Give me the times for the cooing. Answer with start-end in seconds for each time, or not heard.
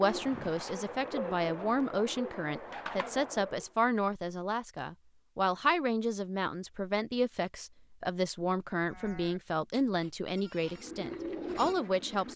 0.0-3.7, 10.6-12.3.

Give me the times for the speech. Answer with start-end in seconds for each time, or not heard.
0.0-12.3.